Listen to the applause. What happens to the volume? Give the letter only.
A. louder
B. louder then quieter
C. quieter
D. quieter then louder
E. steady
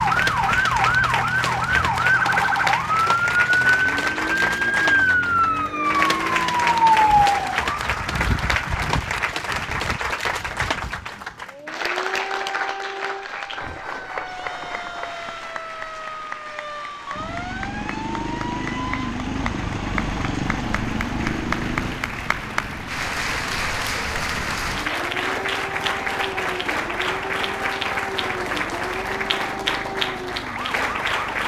D.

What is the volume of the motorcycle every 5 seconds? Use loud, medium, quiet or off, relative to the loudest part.
off, off, off, loud, loud, medium, medium.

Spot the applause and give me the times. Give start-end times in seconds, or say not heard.
0.0-31.4.